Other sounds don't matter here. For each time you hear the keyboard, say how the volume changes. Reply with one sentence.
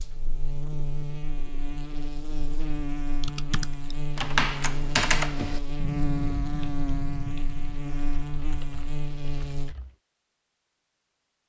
The keyboard can be heard from 3.2 to 9.9 s, getting quieter.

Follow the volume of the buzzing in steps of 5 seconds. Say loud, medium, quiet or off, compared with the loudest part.
loud, loud, off.